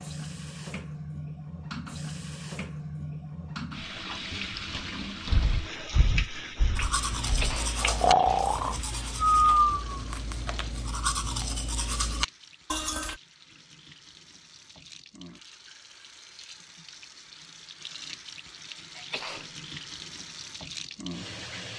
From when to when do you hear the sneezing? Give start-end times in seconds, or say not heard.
7.2-9.2, 18.9-19.5.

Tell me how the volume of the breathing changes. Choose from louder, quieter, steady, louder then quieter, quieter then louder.
quieter then louder.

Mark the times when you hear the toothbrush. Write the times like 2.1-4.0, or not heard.
6.8-13.2.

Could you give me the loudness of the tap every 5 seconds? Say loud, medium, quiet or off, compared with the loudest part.
loud, loud, quiet, medium, loud.